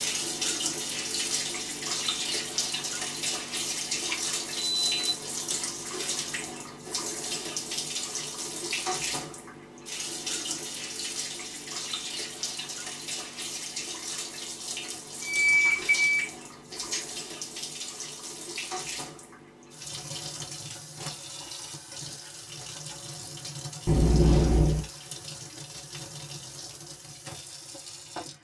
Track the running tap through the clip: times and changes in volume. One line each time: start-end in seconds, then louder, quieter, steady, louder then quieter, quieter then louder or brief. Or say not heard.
0.0-28.3 quieter.